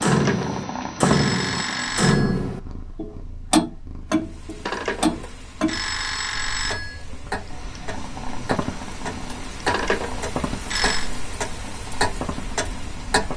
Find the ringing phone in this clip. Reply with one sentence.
You can hear the ringing phone from 0.0 to 2.5 s, from 4.7 to 7.0 s and from 9.7 to 11.1 s.